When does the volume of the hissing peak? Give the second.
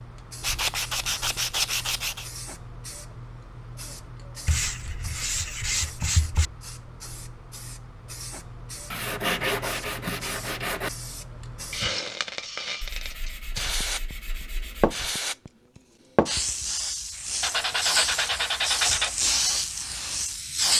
19 s.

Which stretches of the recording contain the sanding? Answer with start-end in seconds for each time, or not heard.
0.4-2.2, 4.5-6.5, 8.9-10.9, 12.8-14.9, 17.4-19.1.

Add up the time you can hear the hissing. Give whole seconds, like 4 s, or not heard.
21 s.